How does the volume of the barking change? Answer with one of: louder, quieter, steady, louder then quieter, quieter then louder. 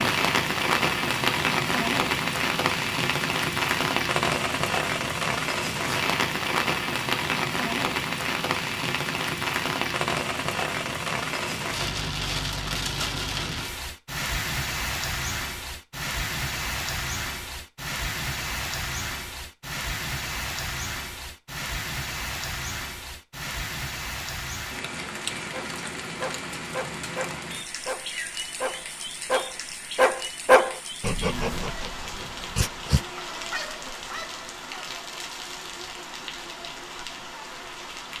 louder then quieter.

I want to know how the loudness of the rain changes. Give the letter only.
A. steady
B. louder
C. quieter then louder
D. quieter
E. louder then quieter
D.